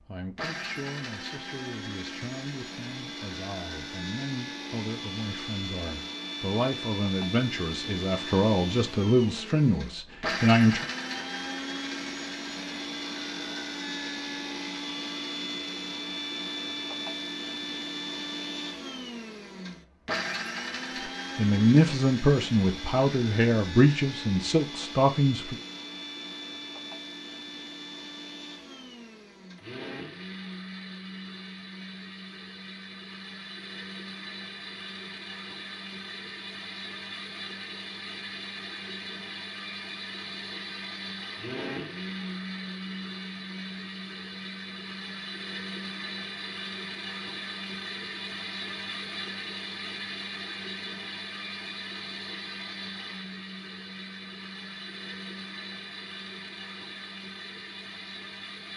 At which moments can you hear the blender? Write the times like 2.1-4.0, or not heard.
0.0-58.7.